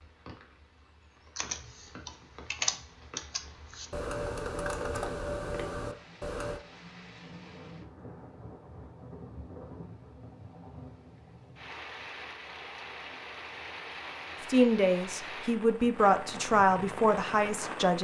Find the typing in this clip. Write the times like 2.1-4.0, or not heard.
1.4-6.6.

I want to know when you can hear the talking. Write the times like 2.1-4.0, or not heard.
14.5-17.9.